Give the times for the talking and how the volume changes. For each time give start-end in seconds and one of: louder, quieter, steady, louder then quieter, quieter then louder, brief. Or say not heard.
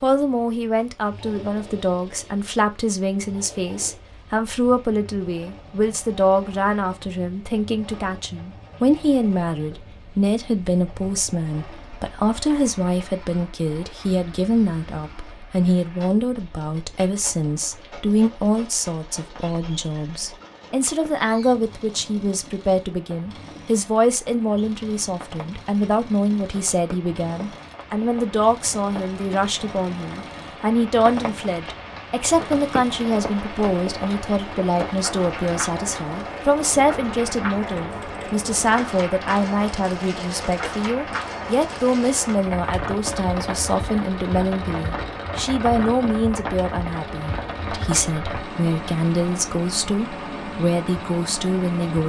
0.0-52.0 steady.